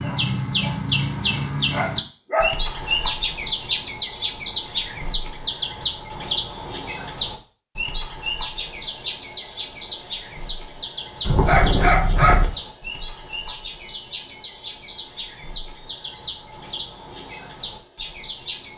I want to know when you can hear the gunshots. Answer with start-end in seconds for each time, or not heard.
not heard.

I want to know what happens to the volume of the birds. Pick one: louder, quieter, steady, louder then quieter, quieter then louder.
quieter.